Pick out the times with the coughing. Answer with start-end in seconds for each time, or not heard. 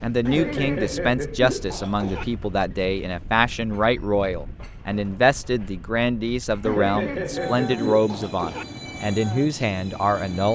0.2-2.2, 6.6-8.7.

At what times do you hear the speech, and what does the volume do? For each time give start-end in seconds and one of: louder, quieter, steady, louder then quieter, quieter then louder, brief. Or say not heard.
0.0-10.5 steady.